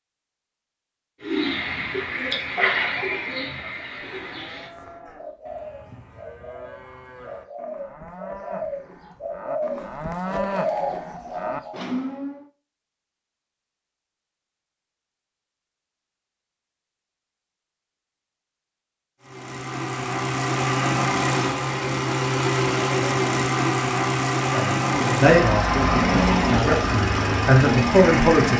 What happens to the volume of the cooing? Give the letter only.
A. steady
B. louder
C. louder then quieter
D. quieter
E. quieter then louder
E.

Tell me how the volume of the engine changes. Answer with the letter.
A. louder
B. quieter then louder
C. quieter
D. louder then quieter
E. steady
E.